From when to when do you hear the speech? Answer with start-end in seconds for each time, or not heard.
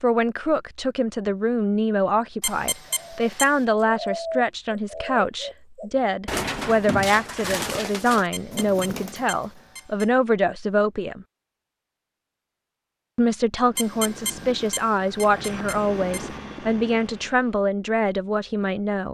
0.0-11.2, 13.2-19.0.